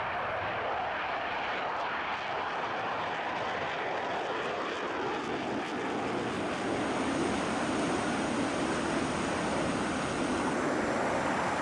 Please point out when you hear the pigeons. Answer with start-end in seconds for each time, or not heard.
not heard.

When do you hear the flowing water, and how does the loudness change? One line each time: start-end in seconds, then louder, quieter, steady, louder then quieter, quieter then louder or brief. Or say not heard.
0.0-11.5 louder.